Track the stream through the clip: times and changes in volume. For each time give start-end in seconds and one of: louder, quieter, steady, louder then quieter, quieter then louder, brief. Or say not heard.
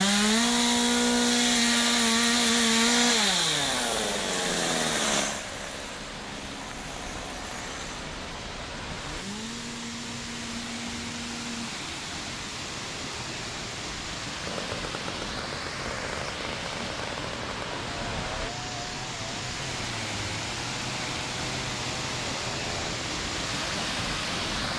0.0-24.7 louder.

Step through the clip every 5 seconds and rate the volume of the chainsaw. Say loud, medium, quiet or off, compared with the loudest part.
loud, quiet, quiet, quiet, quiet.